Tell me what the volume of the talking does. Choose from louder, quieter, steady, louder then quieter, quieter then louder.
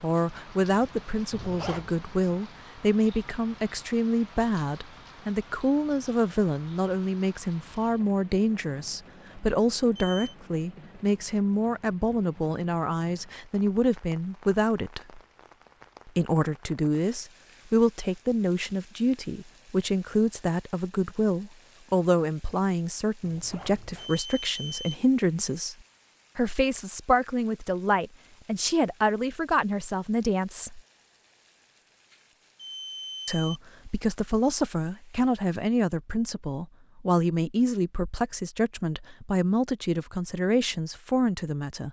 steady.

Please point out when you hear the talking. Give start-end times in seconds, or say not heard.
0.0-15.2, 16.1-25.8, 26.4-30.8, 33.2-41.8.